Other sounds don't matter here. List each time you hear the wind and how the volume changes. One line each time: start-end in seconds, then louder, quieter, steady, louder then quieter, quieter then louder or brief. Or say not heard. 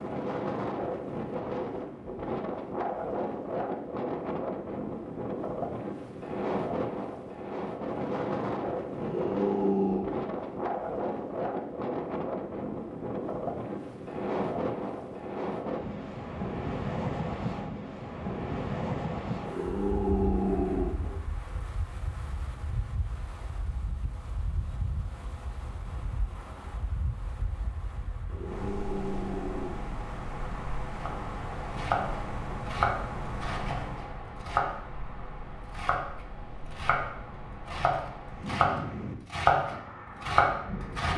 0.0-41.1 quieter.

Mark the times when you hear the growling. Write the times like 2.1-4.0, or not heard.
9.0-10.1, 19.4-21.1, 28.2-29.9.